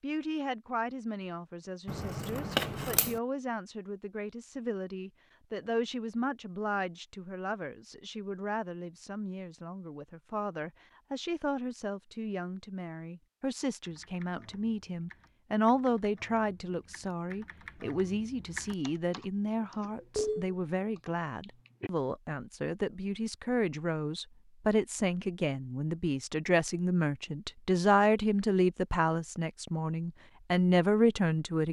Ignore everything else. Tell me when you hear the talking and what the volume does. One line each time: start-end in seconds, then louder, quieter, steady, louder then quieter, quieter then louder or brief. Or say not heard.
0.0-31.6 louder.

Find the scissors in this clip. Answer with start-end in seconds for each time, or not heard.
1.9-3.2.